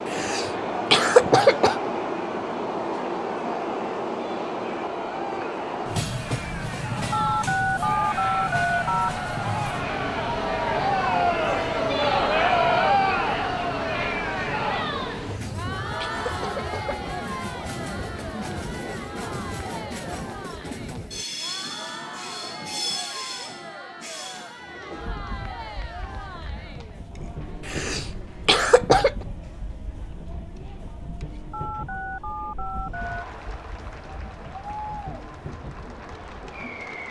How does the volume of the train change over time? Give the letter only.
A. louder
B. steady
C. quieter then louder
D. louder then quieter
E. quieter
E.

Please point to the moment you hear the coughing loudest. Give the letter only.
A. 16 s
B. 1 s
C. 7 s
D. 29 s
B.